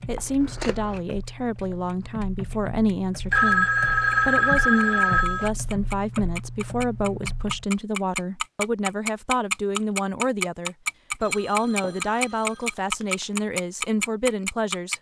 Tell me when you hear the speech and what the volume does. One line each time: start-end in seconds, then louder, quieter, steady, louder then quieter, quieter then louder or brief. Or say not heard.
0.1-14.9 steady.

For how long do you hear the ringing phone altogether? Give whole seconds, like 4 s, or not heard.
4 s.